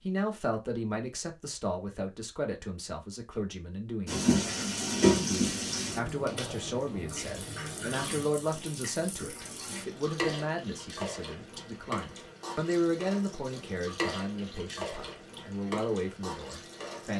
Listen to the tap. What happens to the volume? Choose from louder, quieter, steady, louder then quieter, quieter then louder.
quieter.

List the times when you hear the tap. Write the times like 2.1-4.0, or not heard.
4.0-17.1.